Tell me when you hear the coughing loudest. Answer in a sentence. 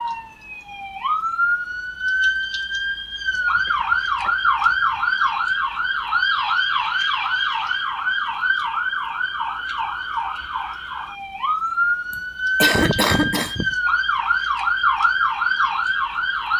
The loudest moment of the coughing is at 13 seconds.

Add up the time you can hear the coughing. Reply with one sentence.
The coughing can be heard for 3 seconds in total.